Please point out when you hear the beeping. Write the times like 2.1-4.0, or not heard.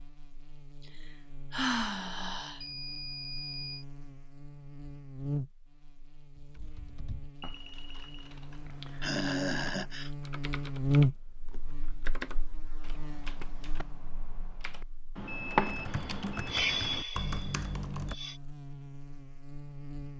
2.6-3.9, 7.4-8.3, 15.2-16.5.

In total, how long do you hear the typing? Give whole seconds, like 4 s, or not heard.
12 s.